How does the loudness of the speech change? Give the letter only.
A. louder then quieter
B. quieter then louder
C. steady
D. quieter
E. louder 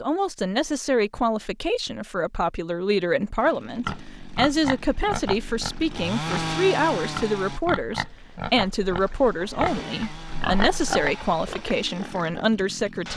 C.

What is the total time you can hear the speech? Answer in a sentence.
The speech can be heard for 13 seconds in total.